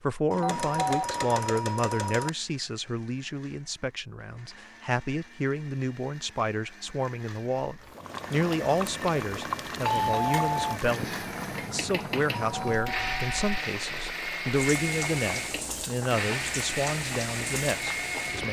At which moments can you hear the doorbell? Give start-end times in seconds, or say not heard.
0.3-2.3, 9.8-10.8, 12.5-13.5.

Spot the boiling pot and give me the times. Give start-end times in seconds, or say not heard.
7.8-18.4.